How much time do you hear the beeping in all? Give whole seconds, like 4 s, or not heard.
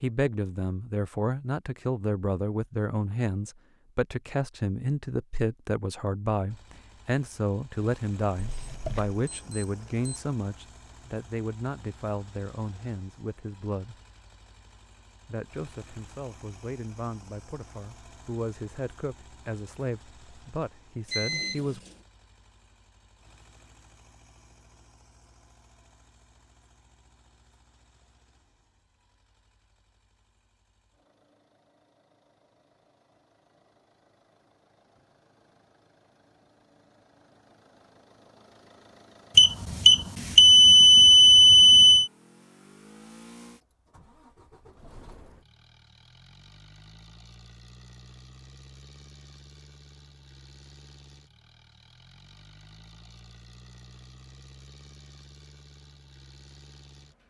5 s.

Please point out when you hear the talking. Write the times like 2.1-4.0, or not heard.
0.0-13.9, 15.2-21.8.